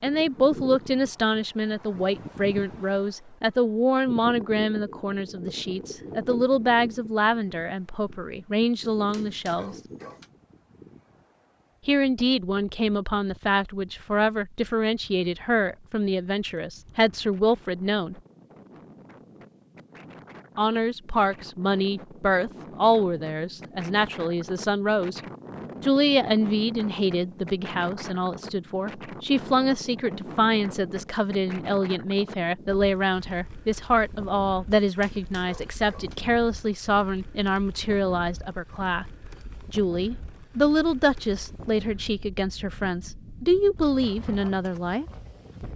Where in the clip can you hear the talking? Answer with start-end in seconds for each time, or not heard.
0.0-9.8, 11.8-18.2, 20.6-25.2, 25.8-39.0, 39.7-45.0.